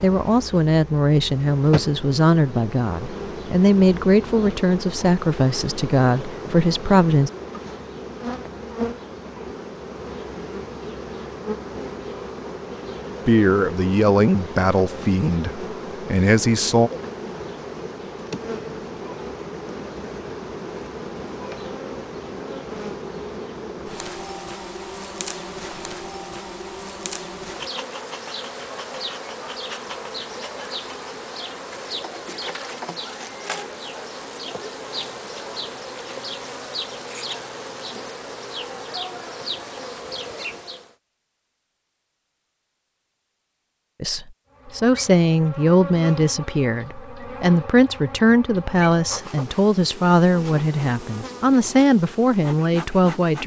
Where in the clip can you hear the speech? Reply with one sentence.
The speech can be heard from 0.0 to 7.3 s, from 13.2 to 16.9 s and from 44.0 to 53.4 s.